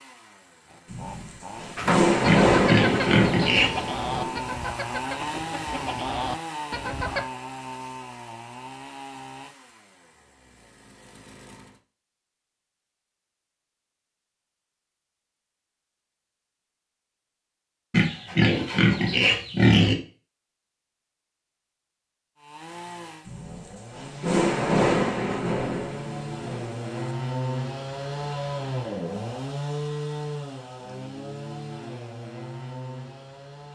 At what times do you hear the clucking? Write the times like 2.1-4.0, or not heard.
1.8-7.2.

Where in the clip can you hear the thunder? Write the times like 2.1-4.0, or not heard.
0.9-4.4, 23.2-27.1.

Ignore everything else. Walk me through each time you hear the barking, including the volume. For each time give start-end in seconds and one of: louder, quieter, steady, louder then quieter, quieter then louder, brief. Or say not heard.
not heard.